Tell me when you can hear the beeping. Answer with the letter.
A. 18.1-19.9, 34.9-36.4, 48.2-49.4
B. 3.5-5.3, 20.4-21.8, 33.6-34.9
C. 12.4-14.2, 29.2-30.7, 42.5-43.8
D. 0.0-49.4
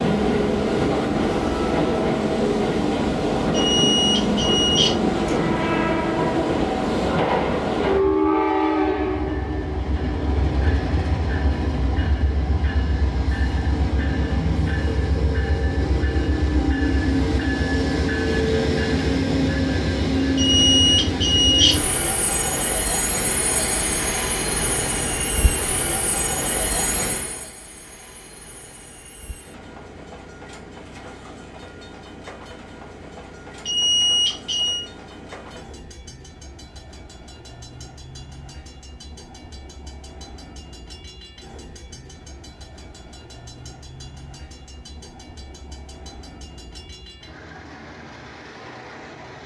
B.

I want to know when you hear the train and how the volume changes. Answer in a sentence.
You can hear the train from 0.0 to 49.4 s, getting quieter.